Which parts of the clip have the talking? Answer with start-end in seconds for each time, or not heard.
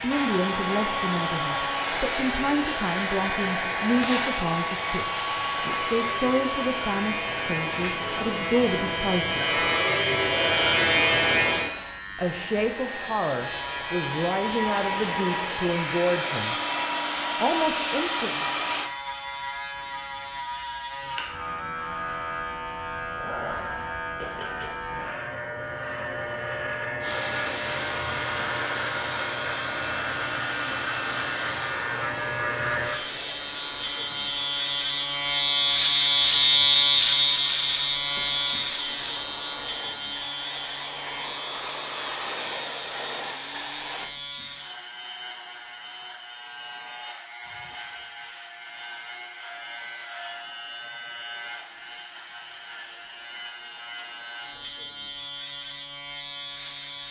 0.0-9.6, 12.2-16.6, 17.4-18.4.